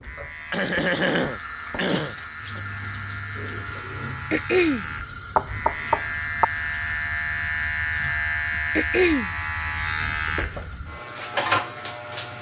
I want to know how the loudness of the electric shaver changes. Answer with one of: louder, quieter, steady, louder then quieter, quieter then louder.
louder.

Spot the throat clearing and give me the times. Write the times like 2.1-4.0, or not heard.
0.5-2.6, 4.3-4.8, 8.8-9.3.